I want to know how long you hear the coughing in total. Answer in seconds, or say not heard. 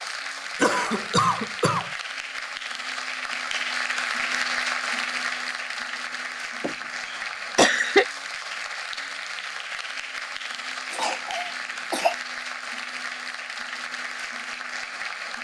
4 s.